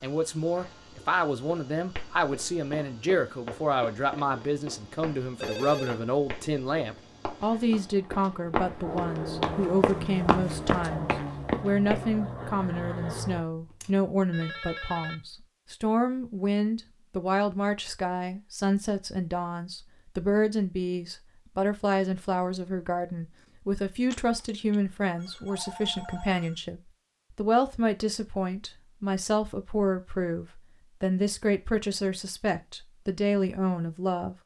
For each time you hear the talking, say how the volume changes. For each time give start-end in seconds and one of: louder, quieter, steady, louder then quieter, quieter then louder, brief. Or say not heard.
0.0-34.4 steady.